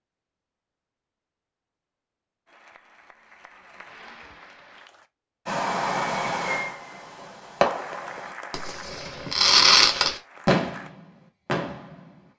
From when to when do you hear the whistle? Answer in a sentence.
The whistle can't be heard in this clip.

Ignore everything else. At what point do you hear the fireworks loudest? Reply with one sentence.
The volume of the fireworks peaks at 10 seconds.